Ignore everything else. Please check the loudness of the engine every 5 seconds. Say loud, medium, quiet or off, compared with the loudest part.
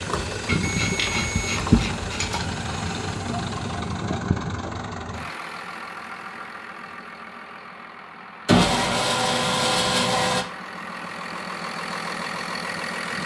loud, medium, loud.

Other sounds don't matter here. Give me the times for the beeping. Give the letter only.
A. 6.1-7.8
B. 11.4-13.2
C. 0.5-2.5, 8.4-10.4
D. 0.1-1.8
D.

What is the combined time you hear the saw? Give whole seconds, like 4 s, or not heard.
4 s.